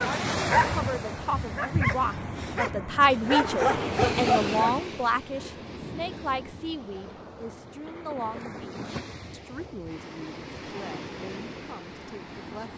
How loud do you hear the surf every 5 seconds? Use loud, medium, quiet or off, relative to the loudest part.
loud, medium, medium.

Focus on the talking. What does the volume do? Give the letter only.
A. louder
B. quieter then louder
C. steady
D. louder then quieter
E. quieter
E.